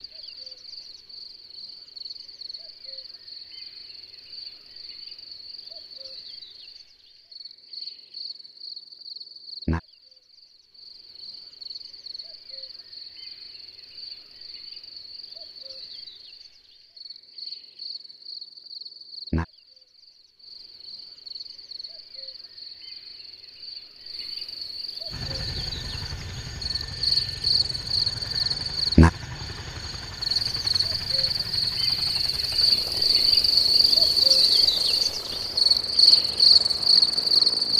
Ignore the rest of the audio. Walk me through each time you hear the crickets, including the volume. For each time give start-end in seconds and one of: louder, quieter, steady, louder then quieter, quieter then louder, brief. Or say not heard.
0.0-37.7 louder.